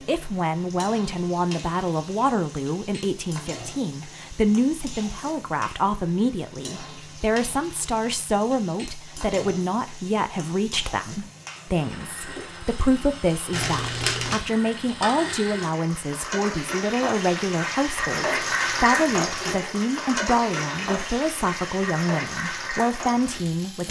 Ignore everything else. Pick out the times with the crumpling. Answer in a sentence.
You can hear the crumpling from 13.5 to 14.4 s.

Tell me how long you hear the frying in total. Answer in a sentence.
You can hear the frying for 24 seconds altogether.